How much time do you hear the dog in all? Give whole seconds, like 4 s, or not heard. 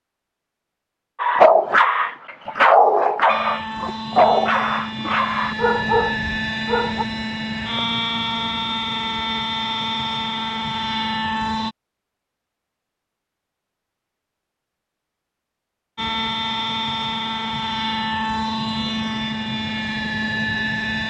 6 s.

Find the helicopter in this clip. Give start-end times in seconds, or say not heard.
3.2-11.8, 15.9-21.0.